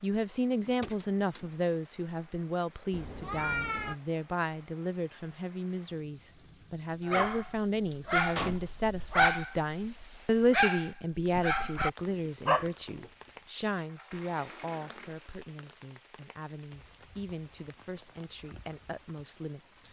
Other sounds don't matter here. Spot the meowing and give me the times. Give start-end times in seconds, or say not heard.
2.9-4.0.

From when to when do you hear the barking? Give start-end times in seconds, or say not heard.
7.0-13.1.